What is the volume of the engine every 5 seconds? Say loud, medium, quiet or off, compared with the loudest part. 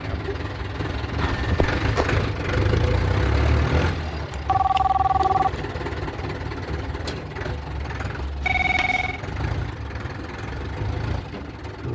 loud, medium, medium.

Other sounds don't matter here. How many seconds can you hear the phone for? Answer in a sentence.
You can hear the phone for 3 seconds altogether.